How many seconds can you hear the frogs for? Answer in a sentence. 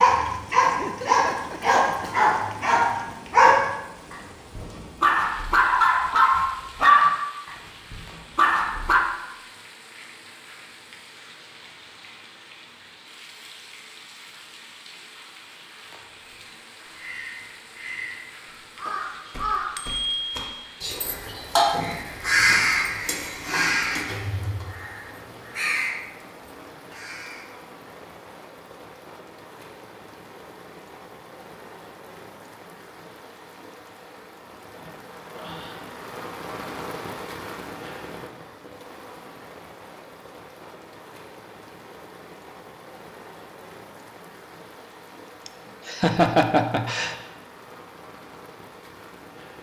The frogs can't be heard in this clip.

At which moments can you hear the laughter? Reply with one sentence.
You can hear the laughter from 0.7 to 2.3 s and from 45.5 to 47.1 s.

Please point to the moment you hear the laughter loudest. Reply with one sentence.
The loudest moment of the laughter is at 46 seconds.